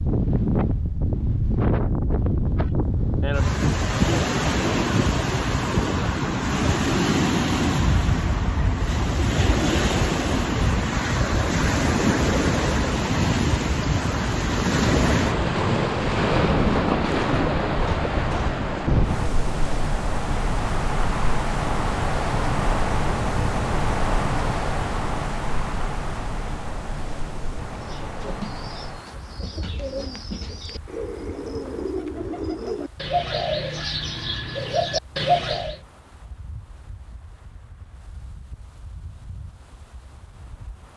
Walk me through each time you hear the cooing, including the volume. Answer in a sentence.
The cooing can be heard from 27.7 to 35.8 s, getting louder.